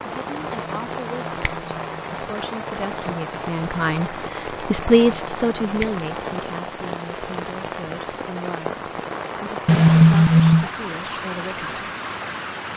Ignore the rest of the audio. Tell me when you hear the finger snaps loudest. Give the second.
10 s.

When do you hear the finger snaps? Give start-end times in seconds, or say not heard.
0.4-2.1, 4.8-6.0, 9.7-10.7.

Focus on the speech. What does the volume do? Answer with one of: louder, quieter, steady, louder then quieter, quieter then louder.
louder then quieter.